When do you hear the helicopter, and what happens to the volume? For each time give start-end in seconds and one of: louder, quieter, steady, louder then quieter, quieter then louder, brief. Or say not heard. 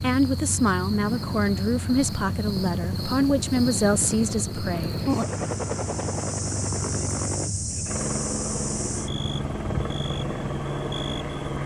0.0-11.6 steady.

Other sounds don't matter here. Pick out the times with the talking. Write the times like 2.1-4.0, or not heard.
0.0-5.0.